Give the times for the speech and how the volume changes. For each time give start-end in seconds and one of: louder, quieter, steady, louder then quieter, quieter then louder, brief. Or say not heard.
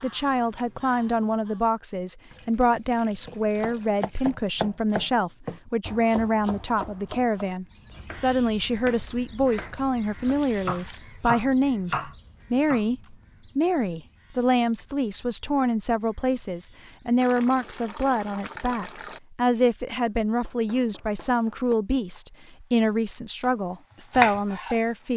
0.0-25.1 steady.